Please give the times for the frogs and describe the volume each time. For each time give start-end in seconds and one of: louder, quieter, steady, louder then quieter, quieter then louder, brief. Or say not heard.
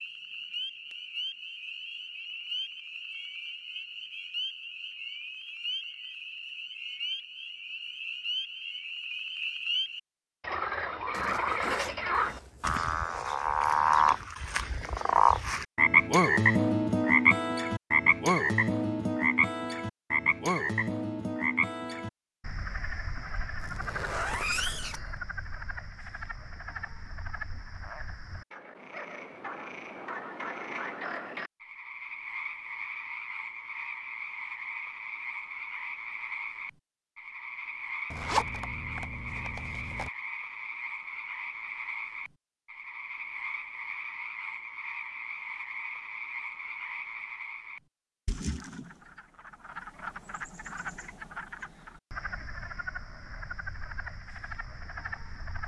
0.0-55.6 louder then quieter.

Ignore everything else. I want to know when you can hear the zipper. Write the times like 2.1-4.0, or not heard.
11.1-12.8, 23.6-25.2, 38.1-40.1.